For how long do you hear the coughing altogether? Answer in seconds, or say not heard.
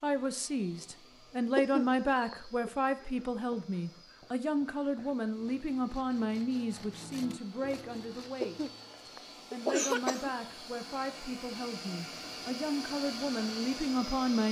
3 s.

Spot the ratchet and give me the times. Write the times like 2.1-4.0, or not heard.
not heard.